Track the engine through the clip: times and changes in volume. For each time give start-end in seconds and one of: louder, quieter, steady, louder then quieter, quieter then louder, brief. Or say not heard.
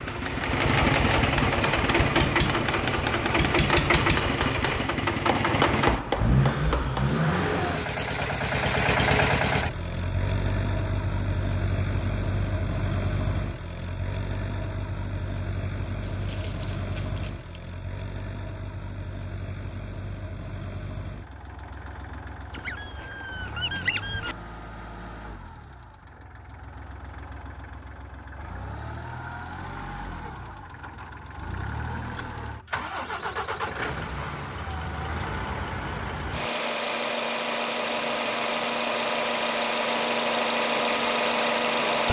0.0-42.0 quieter then louder.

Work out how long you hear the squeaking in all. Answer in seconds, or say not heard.
3 s.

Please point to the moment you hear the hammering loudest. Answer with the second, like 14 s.
6 s.